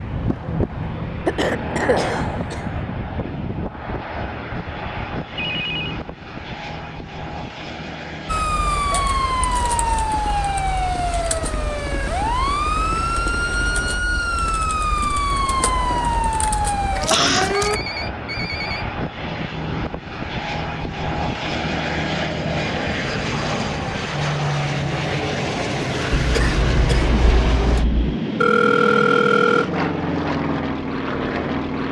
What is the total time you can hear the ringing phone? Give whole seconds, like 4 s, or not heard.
3 s.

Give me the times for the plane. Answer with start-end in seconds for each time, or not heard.
0.0-31.8.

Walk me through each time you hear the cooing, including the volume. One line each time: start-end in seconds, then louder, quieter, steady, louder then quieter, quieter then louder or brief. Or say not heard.
not heard.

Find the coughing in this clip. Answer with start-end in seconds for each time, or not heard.
1.2-2.6, 17.1-17.6, 26.1-28.1.